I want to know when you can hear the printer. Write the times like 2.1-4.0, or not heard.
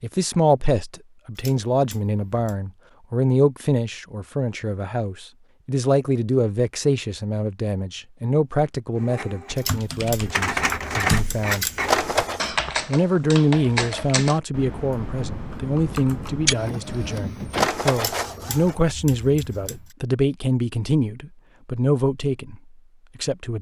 8.9-12.5, 16.4-18.8.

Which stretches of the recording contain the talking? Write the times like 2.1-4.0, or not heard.
0.0-11.7, 12.8-23.5.